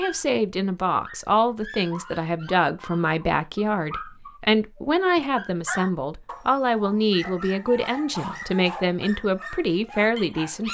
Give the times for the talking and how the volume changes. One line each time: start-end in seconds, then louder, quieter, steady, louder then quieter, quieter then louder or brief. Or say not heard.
0.0-10.6 steady.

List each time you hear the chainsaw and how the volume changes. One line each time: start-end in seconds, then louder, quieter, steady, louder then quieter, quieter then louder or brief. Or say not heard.
not heard.